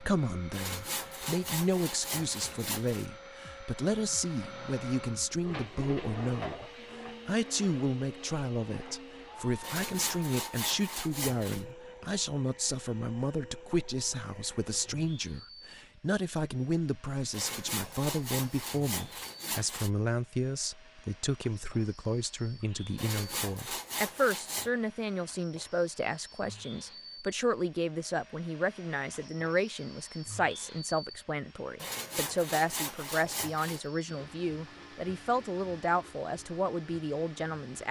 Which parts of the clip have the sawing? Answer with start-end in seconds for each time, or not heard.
0.5-3.0, 9.6-11.7, 17.3-19.9, 22.9-24.7, 31.8-33.8.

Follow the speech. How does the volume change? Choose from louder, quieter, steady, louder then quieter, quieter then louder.
steady.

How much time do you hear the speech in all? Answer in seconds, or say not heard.
38 s.